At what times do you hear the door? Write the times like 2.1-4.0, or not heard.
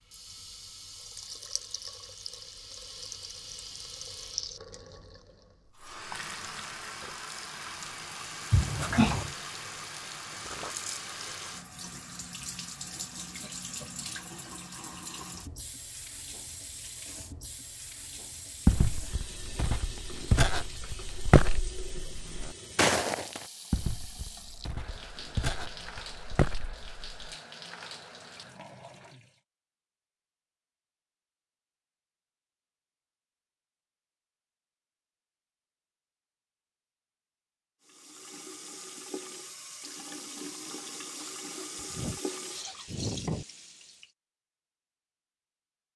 8.5-9.3.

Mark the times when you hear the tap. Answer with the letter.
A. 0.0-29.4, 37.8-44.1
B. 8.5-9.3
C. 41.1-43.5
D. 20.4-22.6
A.